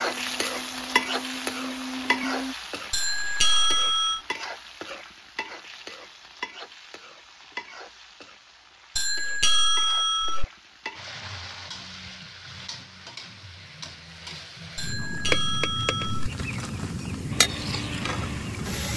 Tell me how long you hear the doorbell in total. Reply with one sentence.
You can hear the doorbell for 4 seconds altogether.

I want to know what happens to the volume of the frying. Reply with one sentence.
The volume of the frying goes down, then up.